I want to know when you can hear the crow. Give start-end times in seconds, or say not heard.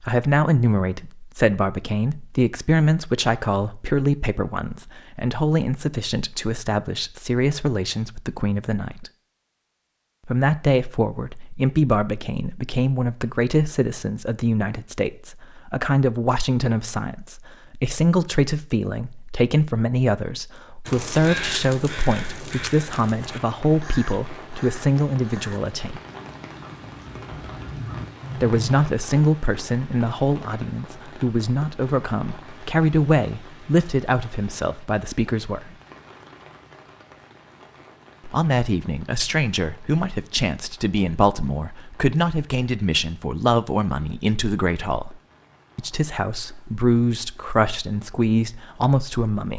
20.9-28.8.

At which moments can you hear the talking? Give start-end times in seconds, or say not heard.
0.0-9.1, 10.2-26.0, 28.4-35.8, 38.2-49.5.